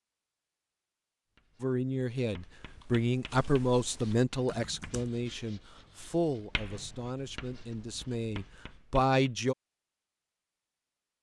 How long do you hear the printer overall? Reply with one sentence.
The printer can't be heard in this clip.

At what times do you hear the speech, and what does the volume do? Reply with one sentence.
You can hear the speech from 1.6 to 9.6 s, getting quieter then louder.